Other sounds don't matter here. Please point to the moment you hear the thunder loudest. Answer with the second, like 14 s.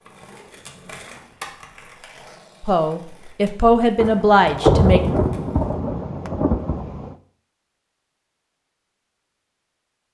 5 s.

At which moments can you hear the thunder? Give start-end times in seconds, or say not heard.
4.0-7.2.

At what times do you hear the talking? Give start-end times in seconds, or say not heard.
2.6-5.0.